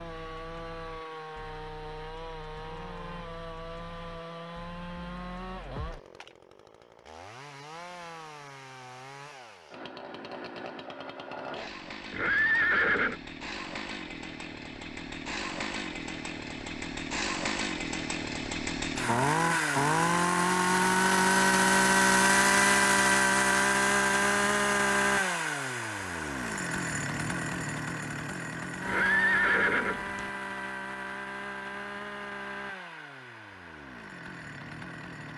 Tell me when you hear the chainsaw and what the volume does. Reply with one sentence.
The chainsaw can be heard from 0.0 to 35.3 s, getting louder then quieter.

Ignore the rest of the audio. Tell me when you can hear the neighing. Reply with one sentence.
The neighing can be heard from 12.1 to 13.2 s and from 28.9 to 30.3 s.